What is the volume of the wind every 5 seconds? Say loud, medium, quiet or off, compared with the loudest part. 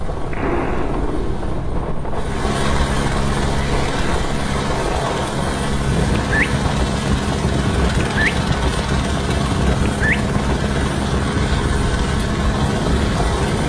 medium, loud, loud.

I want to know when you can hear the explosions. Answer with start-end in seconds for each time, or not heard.
0.3-1.5.